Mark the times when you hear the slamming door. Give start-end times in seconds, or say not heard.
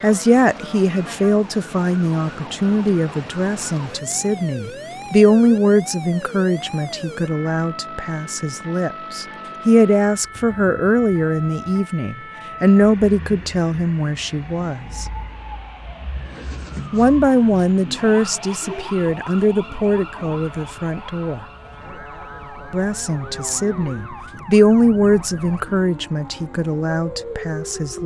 not heard.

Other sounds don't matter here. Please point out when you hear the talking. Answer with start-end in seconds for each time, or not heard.
0.0-15.1, 16.9-21.4, 22.7-28.0.